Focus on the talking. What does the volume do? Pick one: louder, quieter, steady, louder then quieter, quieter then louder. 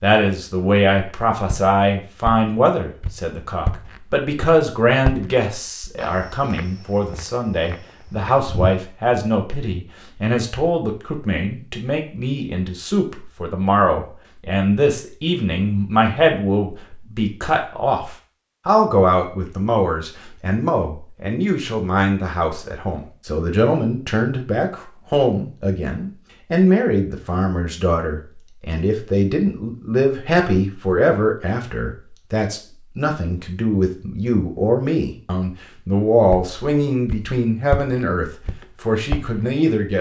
steady.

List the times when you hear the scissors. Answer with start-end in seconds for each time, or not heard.
not heard.